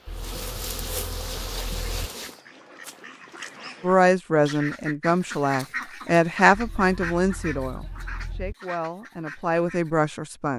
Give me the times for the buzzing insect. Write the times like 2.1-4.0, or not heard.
0.0-2.4.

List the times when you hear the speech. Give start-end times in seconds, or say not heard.
3.8-10.5.